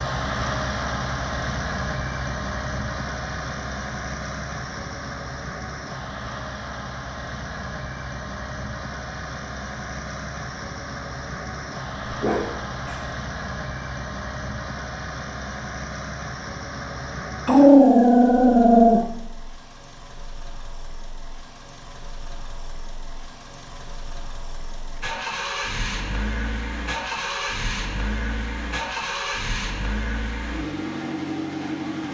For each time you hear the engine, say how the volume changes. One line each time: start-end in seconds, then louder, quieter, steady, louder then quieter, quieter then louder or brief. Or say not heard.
0.0-32.0 quieter then louder.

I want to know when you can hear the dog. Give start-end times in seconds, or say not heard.
12.1-13.1, 17.4-19.0.